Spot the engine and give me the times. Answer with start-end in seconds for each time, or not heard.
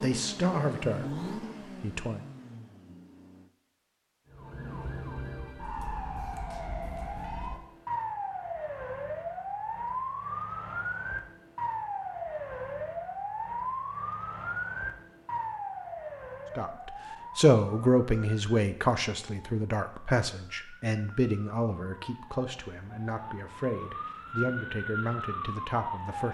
0.0-3.5.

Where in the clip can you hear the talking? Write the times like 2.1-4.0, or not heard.
0.0-1.1, 1.8-2.2, 16.6-26.2.